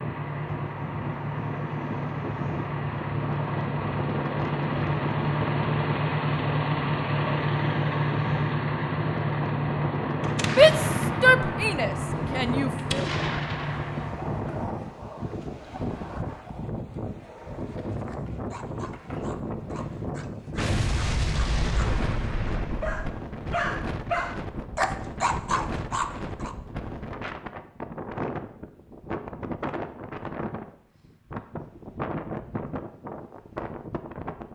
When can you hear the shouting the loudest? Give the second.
11 s.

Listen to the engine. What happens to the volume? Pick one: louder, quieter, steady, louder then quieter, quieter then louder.
louder then quieter.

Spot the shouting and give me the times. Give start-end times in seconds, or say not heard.
10.4-13.1.